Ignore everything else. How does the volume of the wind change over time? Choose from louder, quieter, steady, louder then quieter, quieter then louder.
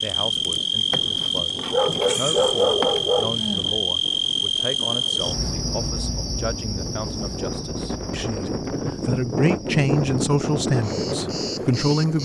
louder.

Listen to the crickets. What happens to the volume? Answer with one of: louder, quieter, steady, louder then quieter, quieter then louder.
quieter.